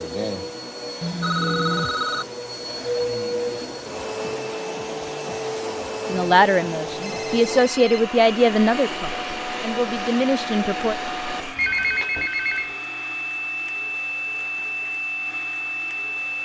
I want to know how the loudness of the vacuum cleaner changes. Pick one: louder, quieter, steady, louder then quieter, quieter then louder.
steady.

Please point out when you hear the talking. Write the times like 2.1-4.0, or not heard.
6.0-10.9.